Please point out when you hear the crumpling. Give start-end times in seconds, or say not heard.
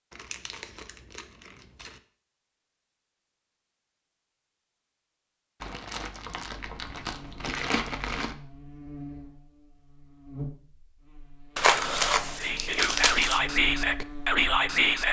0.1-2.0, 5.6-8.3, 11.6-13.4.